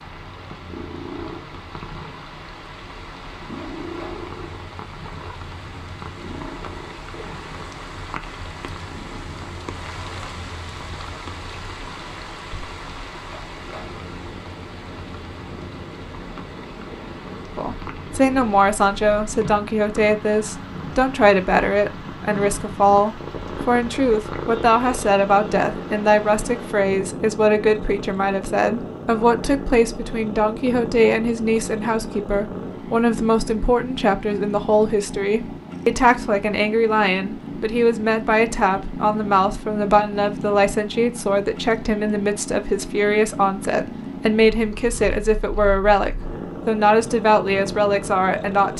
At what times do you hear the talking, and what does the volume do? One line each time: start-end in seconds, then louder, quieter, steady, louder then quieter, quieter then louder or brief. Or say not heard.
17.6-48.7 steady.